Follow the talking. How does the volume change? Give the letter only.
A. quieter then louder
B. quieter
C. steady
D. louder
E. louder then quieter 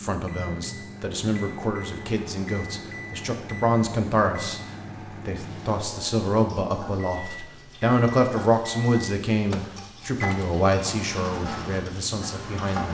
E.